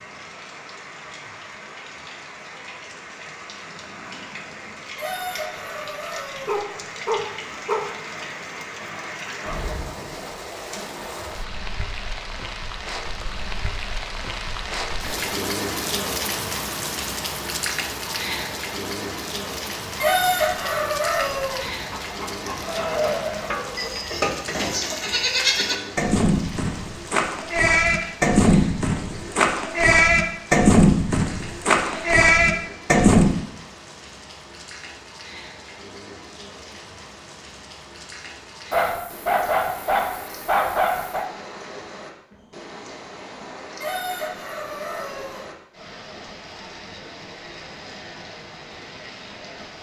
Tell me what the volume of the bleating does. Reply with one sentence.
The loudness of the bleating goes up.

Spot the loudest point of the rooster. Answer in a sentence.
The volume of the rooster peaks at 20 seconds.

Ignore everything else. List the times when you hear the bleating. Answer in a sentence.
The bleating can be heard from 22.6 to 33.4 s.